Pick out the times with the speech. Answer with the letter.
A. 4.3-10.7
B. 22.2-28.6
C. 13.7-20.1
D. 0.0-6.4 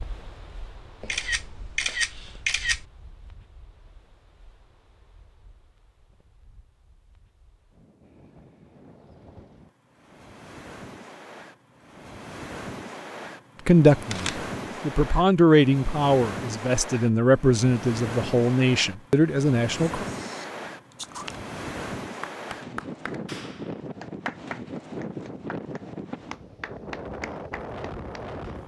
C.